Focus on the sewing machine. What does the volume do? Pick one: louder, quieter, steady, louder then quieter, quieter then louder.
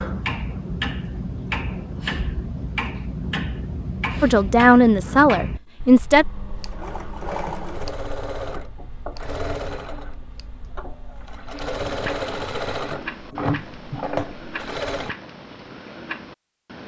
quieter then louder.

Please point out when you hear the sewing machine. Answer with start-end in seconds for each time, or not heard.
6.2-15.2.